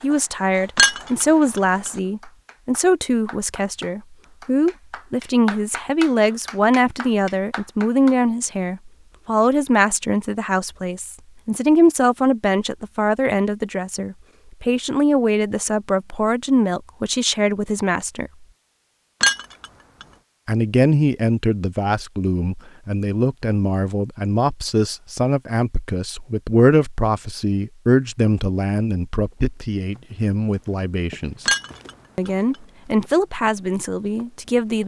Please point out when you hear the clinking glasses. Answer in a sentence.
You can hear the clinking glasses from 0.8 to 1.6 s, from 19.2 to 20.1 s and from 31.4 to 32.3 s.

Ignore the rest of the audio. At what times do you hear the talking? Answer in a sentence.
You can hear the talking from 0.0 to 18.3 s, from 20.4 to 31.4 s and from 32.1 to 34.8 s.